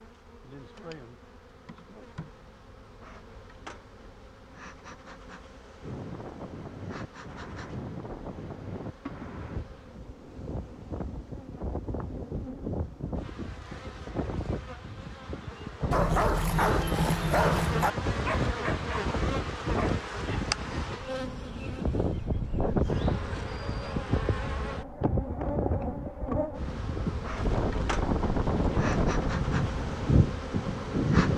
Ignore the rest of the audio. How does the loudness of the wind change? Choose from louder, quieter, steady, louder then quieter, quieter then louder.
louder.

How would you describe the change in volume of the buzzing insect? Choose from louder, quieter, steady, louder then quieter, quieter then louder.
louder.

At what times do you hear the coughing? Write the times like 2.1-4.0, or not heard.
not heard.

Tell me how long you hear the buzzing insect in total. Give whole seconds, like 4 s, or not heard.
31 s.